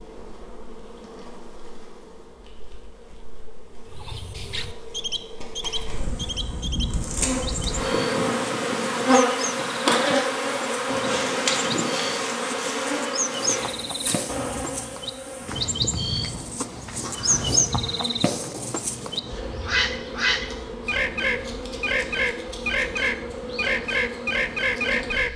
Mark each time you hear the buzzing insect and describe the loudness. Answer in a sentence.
The buzzing insect can be heard from 0.0 to 25.3 s, getting louder then quieter.